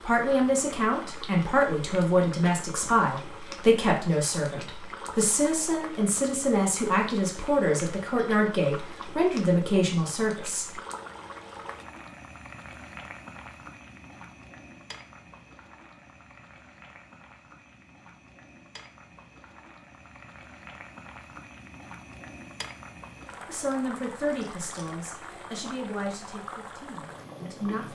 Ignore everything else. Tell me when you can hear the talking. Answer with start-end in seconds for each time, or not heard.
0.0-10.7, 23.4-27.9.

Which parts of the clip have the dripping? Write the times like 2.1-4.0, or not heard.
not heard.